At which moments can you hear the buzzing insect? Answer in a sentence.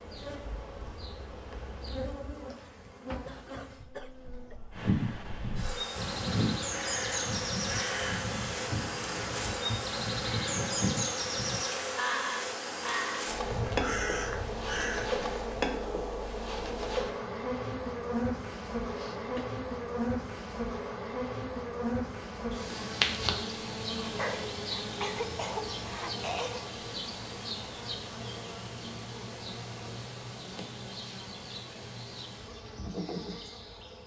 The buzzing insect can be heard from 0.0 to 34.0 s.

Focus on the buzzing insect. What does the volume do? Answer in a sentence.
The loudness of the buzzing insect goes up, then down.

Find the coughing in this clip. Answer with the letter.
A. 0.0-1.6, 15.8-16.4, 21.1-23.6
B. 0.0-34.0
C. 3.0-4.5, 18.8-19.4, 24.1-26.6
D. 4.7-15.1
C.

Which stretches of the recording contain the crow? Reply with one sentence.
You can hear the crow from 4.7 to 15.1 s.